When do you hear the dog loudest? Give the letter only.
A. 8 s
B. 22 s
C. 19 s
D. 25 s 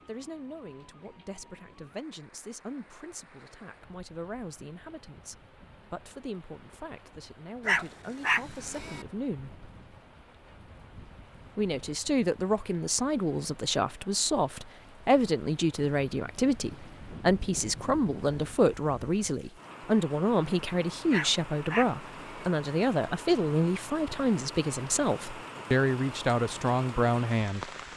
A.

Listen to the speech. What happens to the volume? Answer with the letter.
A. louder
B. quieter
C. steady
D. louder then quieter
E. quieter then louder
A.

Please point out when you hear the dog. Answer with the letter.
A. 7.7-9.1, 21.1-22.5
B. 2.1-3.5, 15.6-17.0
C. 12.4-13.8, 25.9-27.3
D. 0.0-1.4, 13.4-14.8
A.